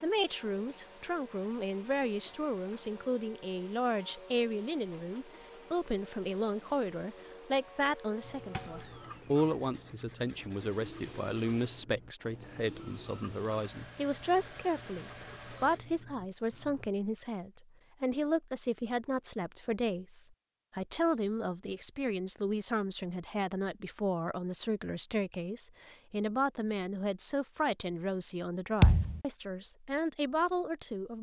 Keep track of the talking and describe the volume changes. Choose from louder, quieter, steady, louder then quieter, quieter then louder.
steady.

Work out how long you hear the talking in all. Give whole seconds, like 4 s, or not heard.
31 s.